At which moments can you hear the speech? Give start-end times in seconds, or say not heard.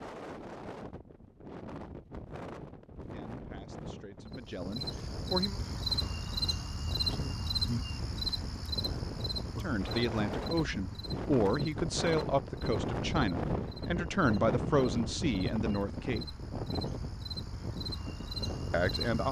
3.1-5.5, 9.6-16.4, 18.7-19.2.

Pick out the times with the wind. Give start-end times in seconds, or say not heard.
0.0-19.1.